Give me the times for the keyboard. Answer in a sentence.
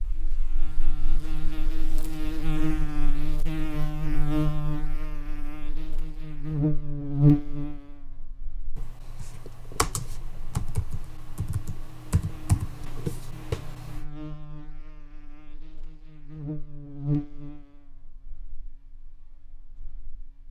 You can hear the keyboard from 8.8 to 14.1 s.